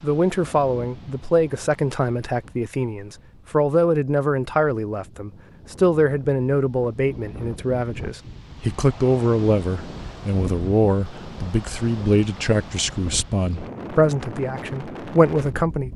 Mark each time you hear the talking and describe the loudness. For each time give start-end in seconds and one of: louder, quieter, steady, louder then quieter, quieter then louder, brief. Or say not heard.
0.0-15.9 steady.